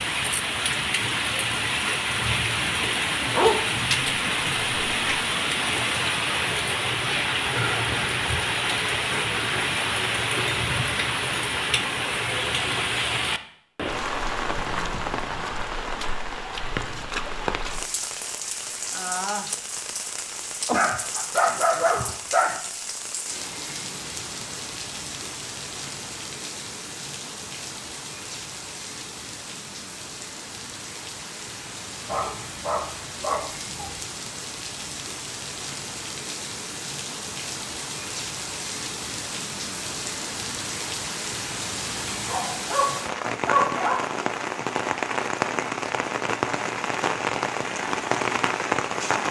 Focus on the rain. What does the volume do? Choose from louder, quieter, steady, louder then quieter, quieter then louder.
quieter then louder.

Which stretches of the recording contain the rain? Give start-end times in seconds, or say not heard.
0.0-49.2.